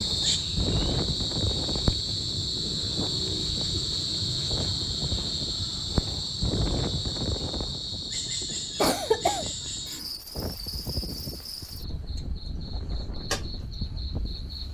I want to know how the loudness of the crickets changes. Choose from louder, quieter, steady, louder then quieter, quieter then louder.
quieter.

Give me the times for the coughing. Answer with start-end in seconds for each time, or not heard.
8.8-9.4.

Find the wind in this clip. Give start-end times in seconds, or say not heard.
0.0-14.7.